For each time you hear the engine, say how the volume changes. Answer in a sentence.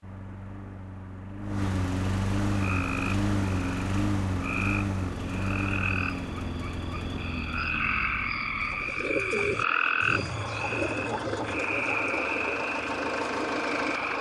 You can hear the engine from 0.0 to 14.1 s, getting quieter then louder.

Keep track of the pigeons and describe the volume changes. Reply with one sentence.
The loudness of the pigeons goes down.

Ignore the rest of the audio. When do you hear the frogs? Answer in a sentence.
The frogs can be heard from 2.5 to 14.1 s.